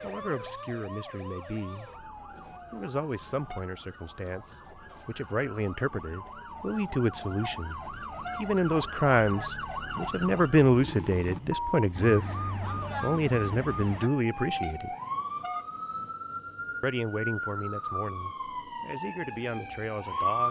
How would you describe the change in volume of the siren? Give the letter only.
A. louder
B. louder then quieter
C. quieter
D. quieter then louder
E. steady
A.